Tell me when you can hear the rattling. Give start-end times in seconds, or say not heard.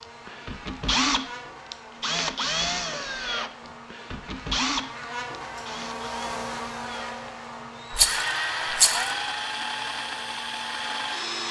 7.9-9.1.